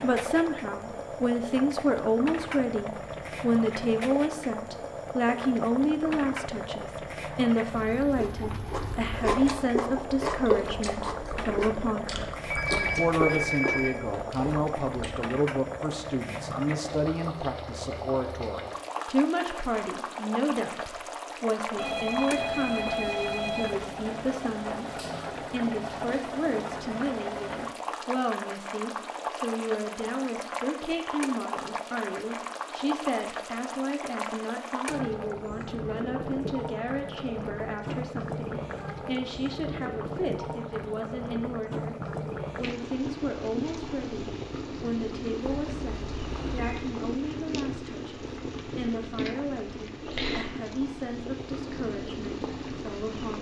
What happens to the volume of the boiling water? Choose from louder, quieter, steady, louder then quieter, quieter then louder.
steady.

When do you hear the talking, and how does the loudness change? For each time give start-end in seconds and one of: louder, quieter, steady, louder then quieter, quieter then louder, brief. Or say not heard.
0.0-53.3 quieter.